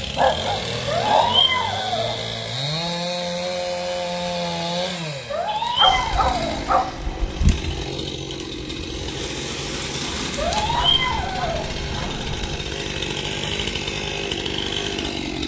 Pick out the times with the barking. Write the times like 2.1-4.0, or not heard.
0.1-1.4, 5.8-7.5, 10.6-12.6.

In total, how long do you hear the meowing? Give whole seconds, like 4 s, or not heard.
4 s.